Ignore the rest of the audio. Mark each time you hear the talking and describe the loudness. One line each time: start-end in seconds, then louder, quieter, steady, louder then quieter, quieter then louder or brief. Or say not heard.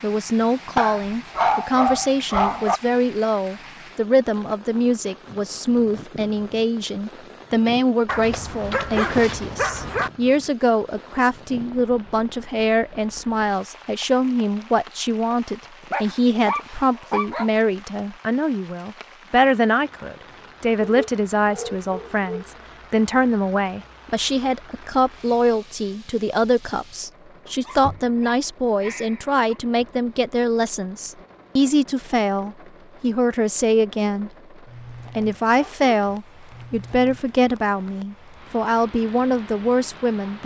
0.0-34.3 steady
35.1-40.4 steady.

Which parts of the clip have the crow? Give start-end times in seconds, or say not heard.
not heard.